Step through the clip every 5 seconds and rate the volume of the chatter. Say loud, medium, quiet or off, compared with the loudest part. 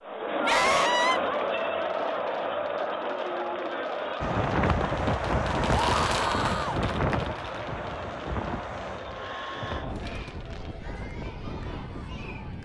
loud, medium, quiet.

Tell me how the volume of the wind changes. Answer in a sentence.
The loudness of the wind goes down.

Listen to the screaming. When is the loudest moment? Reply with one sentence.
The loudest moment of the screaming is at 1 second.